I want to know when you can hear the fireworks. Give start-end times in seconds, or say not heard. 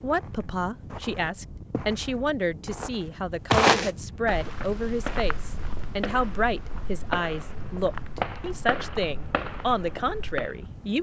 4.4-10.6.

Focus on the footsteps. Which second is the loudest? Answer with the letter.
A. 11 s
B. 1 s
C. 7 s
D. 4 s
D.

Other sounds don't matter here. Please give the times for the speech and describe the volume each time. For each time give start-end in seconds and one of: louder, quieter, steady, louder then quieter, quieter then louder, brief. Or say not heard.
0.0-10.9 steady.